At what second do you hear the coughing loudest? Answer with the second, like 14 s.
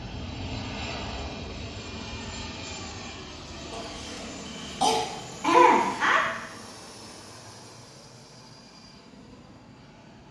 6 s.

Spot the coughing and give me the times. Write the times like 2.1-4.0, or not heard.
3.7-6.2.